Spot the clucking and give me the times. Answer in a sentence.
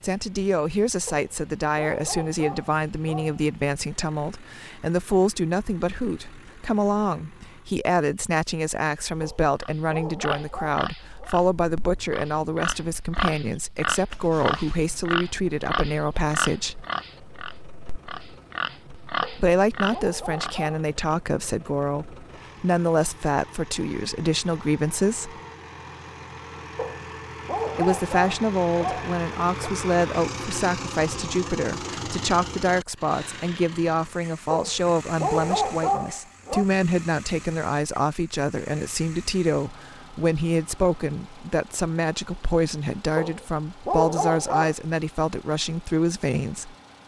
The clucking can't be heard in this clip.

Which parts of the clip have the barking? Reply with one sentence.
The barking can be heard from 1.1 to 4.0 s, from 9.2 to 11.3 s, from 19.2 to 20.8 s, from 26.8 to 29.7 s, from 34.5 to 36.6 s and from 43.1 to 44.8 s.